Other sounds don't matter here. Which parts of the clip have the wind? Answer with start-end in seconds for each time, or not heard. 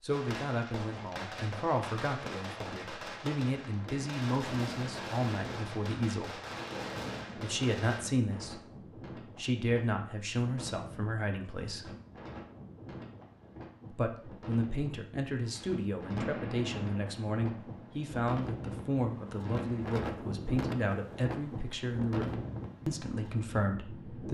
3.7-24.2.